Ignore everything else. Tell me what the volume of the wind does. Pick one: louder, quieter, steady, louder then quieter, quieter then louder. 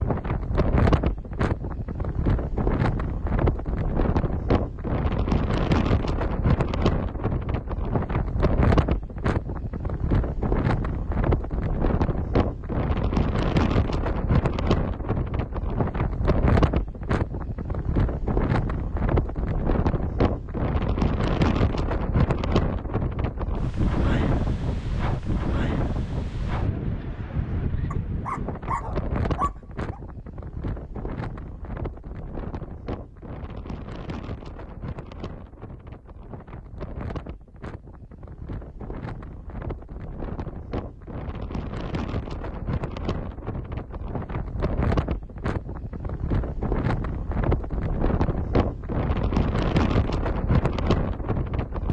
quieter then louder.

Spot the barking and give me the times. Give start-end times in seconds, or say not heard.
27.9-30.0.